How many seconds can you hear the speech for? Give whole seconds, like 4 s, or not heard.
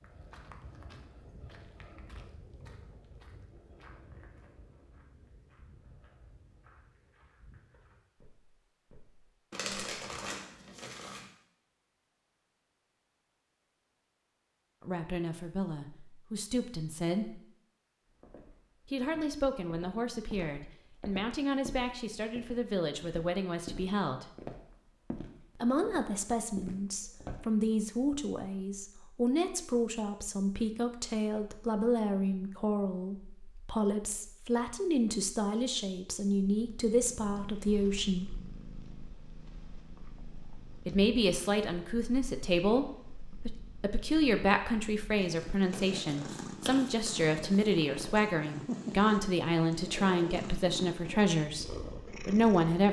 33 s.